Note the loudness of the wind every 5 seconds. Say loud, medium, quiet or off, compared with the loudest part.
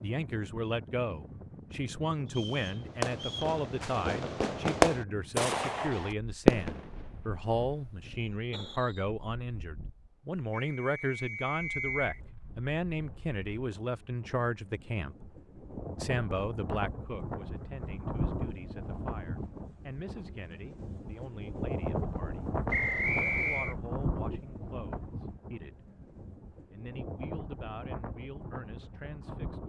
medium, quiet, quiet, loud, loud, medium.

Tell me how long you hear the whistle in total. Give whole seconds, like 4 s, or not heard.
4 s.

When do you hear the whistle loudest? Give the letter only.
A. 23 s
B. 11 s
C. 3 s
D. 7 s
A.